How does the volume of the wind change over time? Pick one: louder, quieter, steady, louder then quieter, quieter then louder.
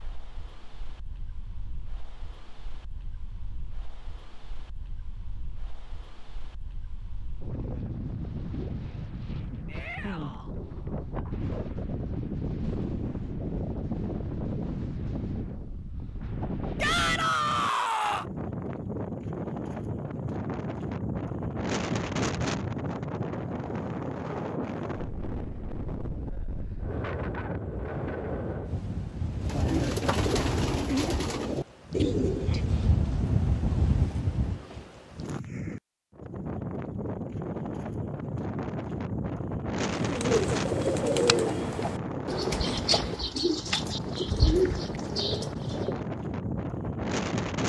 louder.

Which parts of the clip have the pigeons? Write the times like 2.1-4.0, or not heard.
29.4-32.8, 40.0-46.0.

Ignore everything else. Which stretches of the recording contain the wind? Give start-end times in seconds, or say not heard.
0.0-47.6.